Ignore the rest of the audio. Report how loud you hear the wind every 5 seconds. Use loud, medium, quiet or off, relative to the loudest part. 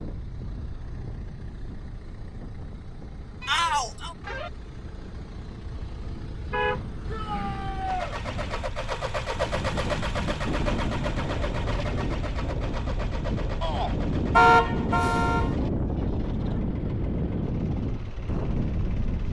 quiet, medium, loud, loud.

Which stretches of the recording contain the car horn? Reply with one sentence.
You can hear the car horn from 3.4 to 4.5 s, from 6.5 to 7.7 s and from 14.3 to 15.6 s.